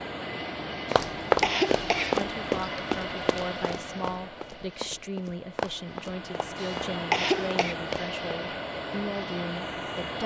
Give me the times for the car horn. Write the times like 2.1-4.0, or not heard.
not heard.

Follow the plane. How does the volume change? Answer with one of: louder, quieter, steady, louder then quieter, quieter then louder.
quieter then louder.